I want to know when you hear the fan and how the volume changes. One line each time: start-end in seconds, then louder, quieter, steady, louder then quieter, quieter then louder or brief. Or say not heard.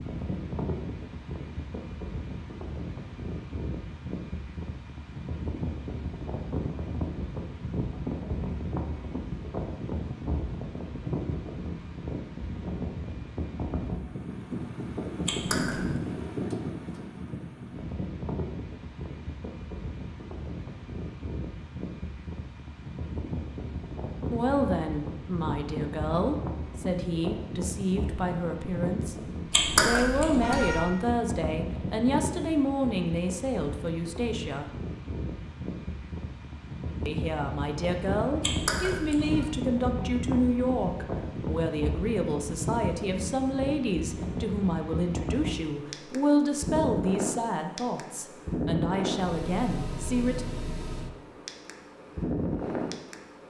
0.0-53.4 steady.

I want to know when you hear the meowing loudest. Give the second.
30 s.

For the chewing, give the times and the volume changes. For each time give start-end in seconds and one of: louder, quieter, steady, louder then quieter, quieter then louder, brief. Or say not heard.
not heard.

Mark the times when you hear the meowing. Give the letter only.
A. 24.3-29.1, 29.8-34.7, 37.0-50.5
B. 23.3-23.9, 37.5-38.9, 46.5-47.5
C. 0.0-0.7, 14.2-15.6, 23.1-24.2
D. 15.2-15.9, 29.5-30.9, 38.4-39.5
D.